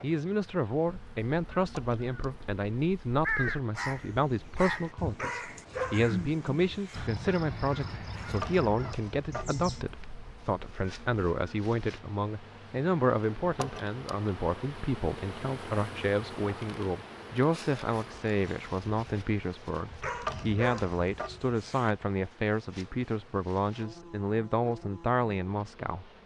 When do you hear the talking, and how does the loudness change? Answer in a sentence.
You can hear the talking from 0.0 to 26.1 s, at a steady volume.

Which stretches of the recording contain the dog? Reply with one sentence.
You can hear the dog from 5.2 to 7.1 s and from 20.0 to 21.9 s.